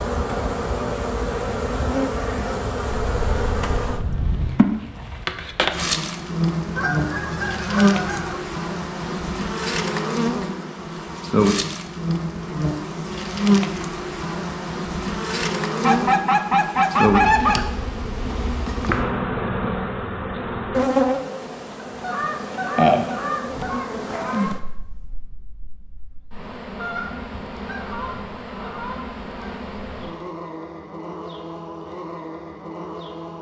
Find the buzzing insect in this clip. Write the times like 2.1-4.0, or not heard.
0.0-33.3.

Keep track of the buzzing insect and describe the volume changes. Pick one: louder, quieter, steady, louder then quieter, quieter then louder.
quieter.